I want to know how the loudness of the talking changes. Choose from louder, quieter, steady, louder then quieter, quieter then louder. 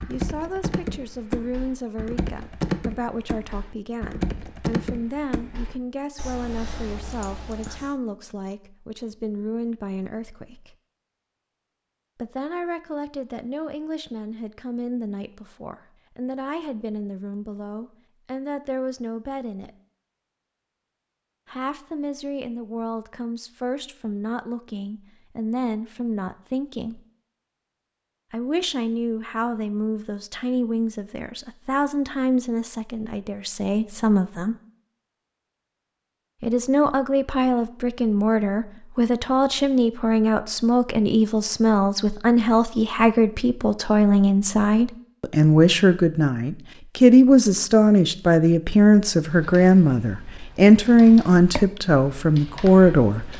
louder.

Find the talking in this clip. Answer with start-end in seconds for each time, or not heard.
0.1-10.8, 12.2-19.7, 21.4-27.0, 28.3-34.5, 36.4-53.3.